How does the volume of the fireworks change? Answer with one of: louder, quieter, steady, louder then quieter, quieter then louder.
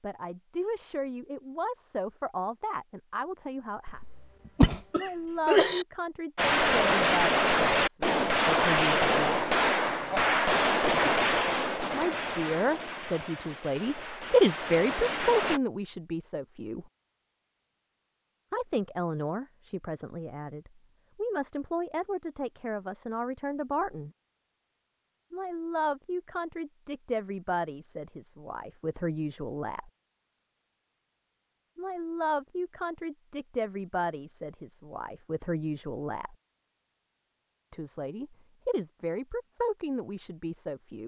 quieter.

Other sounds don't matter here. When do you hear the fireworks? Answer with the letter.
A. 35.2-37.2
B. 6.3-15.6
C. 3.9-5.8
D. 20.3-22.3
B.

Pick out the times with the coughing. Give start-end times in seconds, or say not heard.
3.9-5.8.